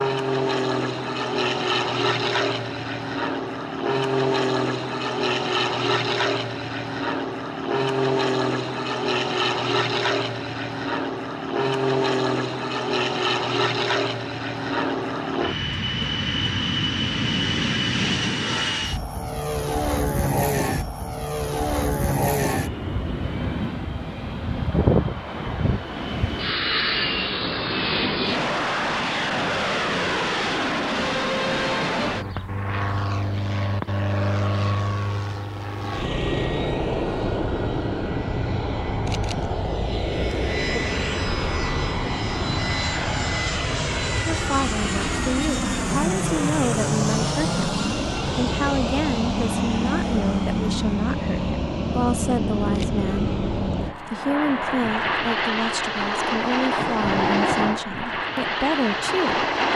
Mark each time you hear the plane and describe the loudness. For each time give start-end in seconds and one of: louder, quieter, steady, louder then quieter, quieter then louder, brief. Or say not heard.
0.0-59.7 steady.